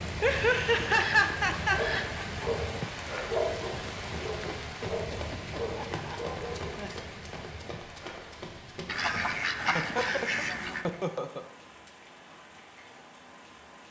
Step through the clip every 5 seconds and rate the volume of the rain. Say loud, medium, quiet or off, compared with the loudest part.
loud, medium, quiet.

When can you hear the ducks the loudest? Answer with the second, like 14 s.
10 s.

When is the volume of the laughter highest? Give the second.
1 s.